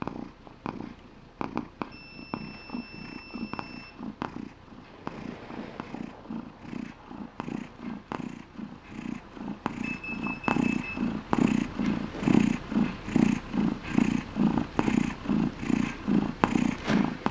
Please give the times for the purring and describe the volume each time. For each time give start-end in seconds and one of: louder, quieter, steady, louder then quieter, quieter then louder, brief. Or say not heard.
0.0-17.2 louder.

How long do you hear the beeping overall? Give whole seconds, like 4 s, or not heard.
3 s.